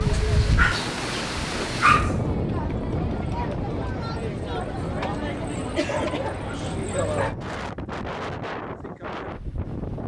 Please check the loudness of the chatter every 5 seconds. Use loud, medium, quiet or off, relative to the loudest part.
medium, loud.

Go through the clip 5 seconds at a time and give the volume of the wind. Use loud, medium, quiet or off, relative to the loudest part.
loud, medium.